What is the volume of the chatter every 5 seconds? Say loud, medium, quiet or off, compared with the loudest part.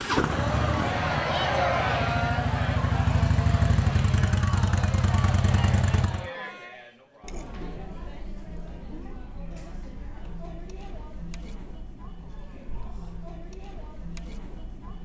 loud, medium, quiet.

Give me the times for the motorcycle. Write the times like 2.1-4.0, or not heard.
0.0-6.3.